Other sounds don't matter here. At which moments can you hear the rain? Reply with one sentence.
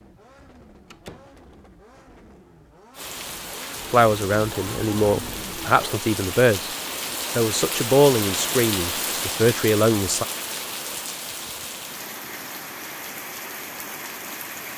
The rain can be heard from 2.9 to 14.7 s.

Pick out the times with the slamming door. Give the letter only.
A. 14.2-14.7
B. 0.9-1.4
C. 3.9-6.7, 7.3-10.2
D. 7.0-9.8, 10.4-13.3
B.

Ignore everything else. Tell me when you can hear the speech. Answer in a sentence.
The speech can be heard from 3.9 to 6.7 s and from 7.3 to 10.2 s.